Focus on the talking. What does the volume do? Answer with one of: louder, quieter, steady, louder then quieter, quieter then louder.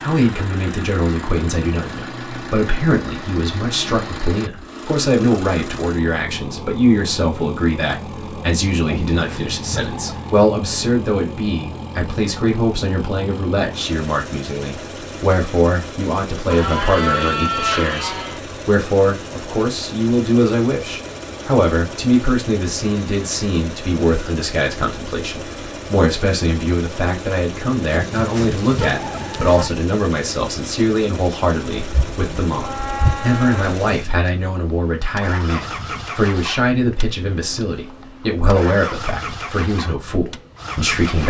steady.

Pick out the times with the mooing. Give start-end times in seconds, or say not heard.
16.5-18.4, 31.8-33.8.